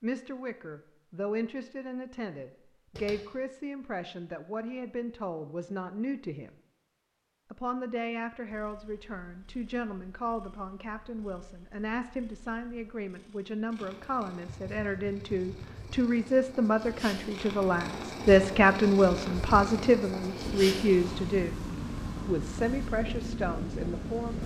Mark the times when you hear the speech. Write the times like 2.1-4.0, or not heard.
0.0-6.5, 7.5-21.6, 22.2-24.4.